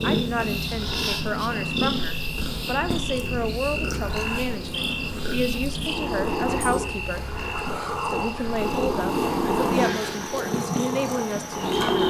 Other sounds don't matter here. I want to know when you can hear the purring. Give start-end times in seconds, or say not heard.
0.0-12.0.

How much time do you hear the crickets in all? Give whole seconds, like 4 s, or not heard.
12 s.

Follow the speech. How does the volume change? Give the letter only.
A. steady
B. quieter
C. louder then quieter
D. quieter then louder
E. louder
A.